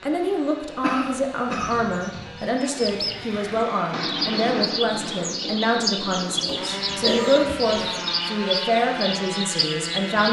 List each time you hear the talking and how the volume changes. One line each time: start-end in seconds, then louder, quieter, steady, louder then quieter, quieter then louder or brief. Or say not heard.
0.0-10.2 steady.